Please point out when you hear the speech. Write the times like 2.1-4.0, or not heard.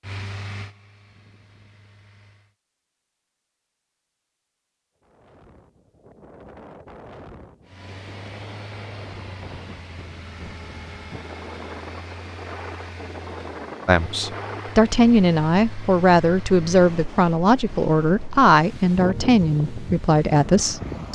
13.8-21.1.